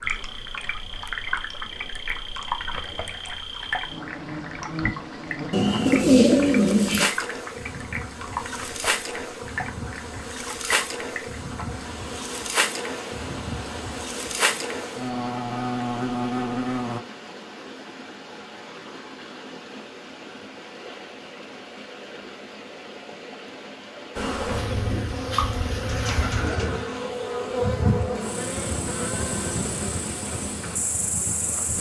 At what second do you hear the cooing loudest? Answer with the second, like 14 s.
6 s.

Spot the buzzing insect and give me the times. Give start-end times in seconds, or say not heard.
0.0-17.0, 24.1-31.7.